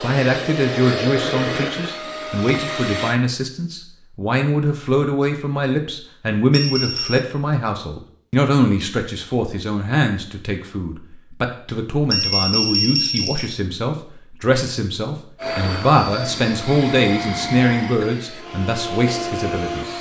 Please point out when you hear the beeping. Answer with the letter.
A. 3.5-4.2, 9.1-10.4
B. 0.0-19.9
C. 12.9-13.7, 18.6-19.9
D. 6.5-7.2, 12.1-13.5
D.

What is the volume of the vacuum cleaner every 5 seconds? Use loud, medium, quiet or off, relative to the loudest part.
loud, off, off, loud.